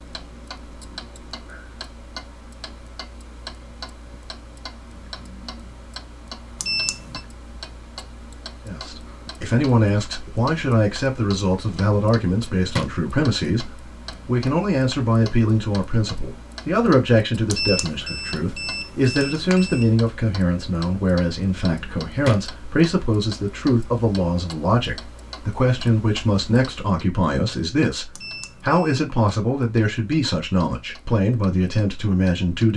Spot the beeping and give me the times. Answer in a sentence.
The beeping can be heard from 6.6 to 7.2 s, from 17.5 to 19.9 s and from 28.1 to 29.1 s.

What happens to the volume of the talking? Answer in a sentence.
The volume of the talking stays about the same.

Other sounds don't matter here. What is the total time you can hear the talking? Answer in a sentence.
You can hear the talking for 24 seconds altogether.